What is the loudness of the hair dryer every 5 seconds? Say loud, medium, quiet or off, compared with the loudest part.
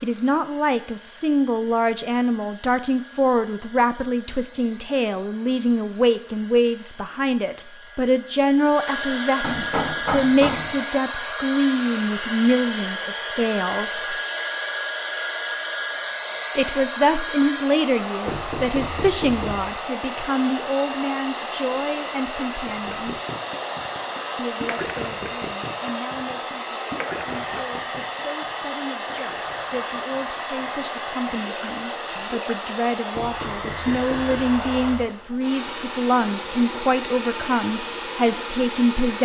quiet, medium, loud, loud, loud, loud, loud, loud.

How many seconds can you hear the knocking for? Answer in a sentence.
The knocking can be heard for 5 seconds in total.